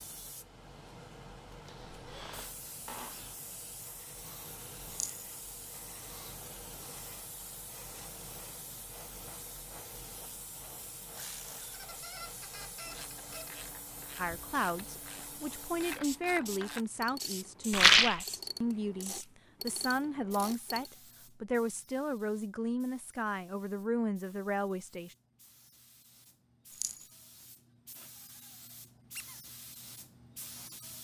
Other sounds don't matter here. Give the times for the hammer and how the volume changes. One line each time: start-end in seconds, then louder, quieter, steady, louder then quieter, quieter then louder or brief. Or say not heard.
not heard.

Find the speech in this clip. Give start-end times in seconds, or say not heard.
14.2-25.1.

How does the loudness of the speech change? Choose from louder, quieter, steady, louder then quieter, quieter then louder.
steady.